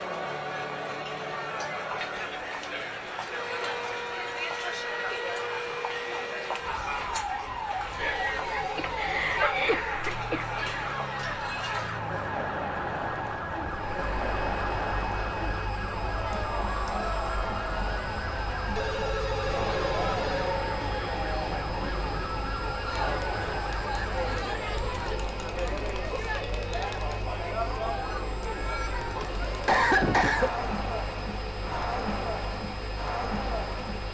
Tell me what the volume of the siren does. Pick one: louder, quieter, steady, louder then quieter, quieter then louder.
steady.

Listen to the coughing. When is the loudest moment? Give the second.
30 s.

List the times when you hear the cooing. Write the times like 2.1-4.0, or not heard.
not heard.